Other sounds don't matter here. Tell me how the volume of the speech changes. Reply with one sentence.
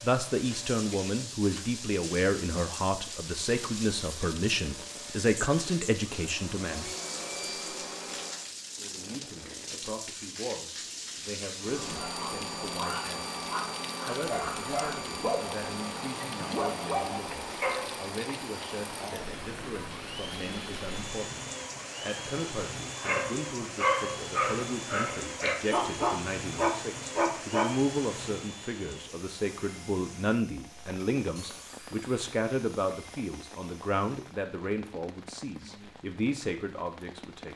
The loudness of the speech goes down, then up.